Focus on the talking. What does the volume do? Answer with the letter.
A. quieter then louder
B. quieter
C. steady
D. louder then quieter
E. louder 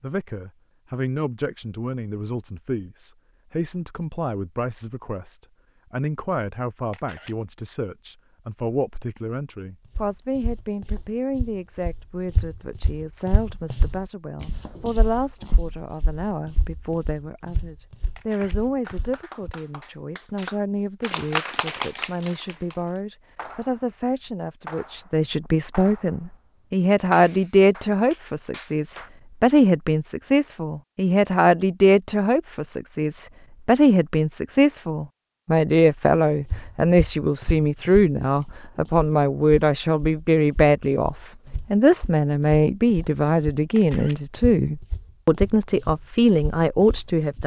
E.